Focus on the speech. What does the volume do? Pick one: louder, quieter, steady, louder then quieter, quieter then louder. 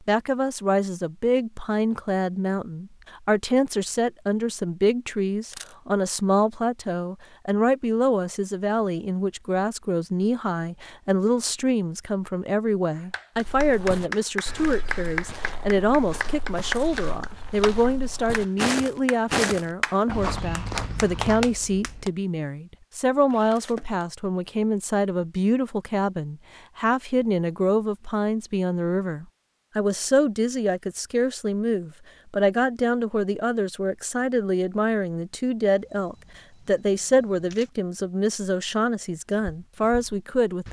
steady.